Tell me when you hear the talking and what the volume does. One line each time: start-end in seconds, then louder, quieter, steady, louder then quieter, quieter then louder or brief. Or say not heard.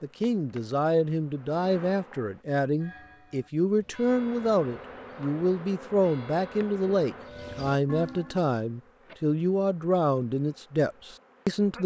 0.0-11.8 steady.